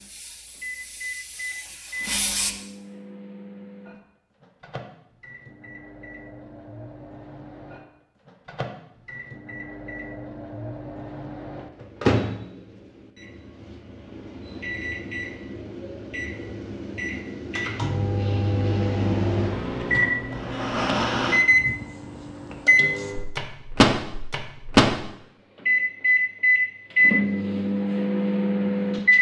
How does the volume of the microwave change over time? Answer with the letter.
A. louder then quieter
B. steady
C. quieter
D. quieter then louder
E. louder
E.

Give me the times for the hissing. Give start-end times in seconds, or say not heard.
0.0-2.5.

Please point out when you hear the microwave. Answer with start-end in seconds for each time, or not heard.
0.0-29.1.